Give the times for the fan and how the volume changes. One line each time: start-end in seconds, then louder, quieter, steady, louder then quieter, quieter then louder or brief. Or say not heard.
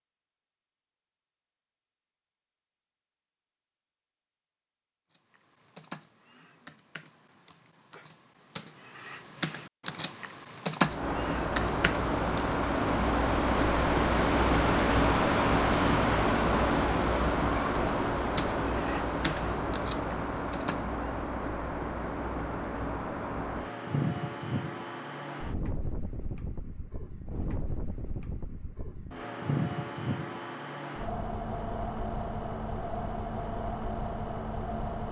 10.8-35.0 quieter.